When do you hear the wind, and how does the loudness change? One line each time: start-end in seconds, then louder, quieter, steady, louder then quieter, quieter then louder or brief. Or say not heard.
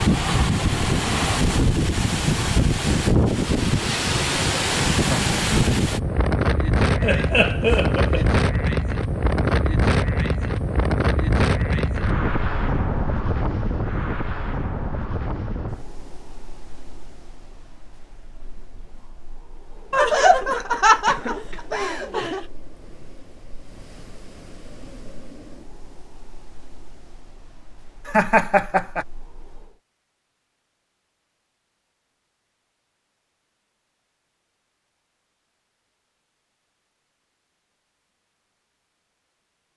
0.0-29.8 quieter.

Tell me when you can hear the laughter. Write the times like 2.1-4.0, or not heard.
7.0-8.2, 19.9-22.4, 28.1-29.1.